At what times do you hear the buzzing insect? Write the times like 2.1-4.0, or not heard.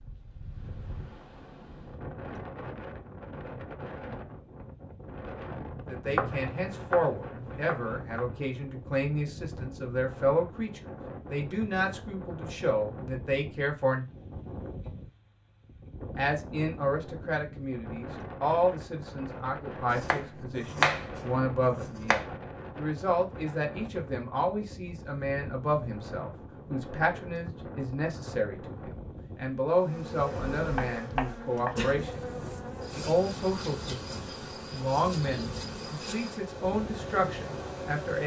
29.6-38.2.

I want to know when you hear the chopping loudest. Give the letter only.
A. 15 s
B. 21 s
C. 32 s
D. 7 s
B.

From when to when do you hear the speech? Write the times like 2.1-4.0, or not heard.
5.8-14.1, 16.1-32.2, 33.0-38.2.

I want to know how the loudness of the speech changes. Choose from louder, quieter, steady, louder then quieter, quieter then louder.
steady.